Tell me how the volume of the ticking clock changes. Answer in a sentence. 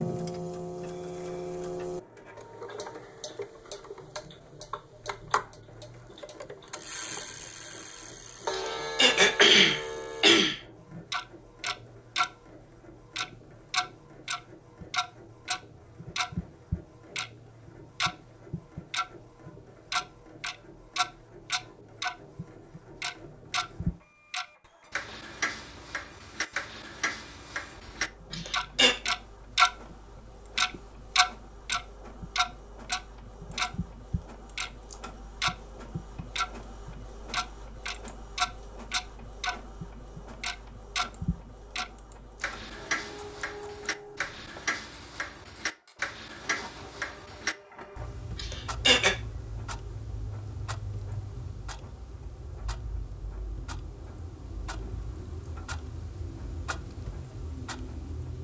The loudness of the ticking clock goes up, then down.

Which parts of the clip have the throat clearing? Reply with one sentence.
The throat clearing can be heard from 8.5 to 10.6 s, from 28.3 to 28.9 s and from 48.4 to 49.1 s.